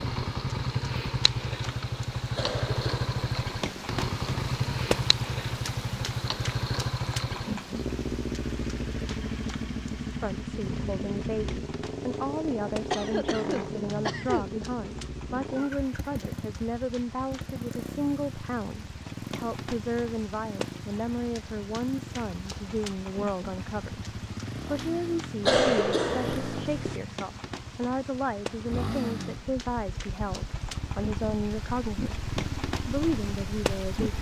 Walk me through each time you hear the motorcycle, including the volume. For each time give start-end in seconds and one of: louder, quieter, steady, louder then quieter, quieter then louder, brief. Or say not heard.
0.0-34.1 quieter.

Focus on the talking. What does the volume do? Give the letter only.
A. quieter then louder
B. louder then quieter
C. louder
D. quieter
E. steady
E.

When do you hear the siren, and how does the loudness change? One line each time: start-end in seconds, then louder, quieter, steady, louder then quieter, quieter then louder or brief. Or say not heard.
not heard.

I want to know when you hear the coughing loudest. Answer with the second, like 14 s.
26 s.